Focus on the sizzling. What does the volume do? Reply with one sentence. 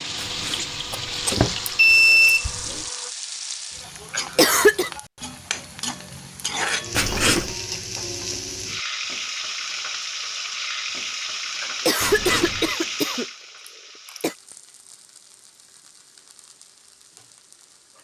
The volume of the sizzling goes down.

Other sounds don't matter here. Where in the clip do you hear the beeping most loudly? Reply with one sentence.
The volume of the beeping peaks at 2 seconds.